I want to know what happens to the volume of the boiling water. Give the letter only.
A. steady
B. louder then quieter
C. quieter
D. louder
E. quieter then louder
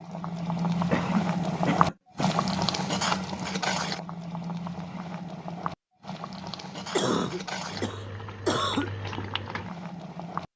C.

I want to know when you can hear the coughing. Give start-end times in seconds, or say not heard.
0.9-2.3, 7.0-8.9.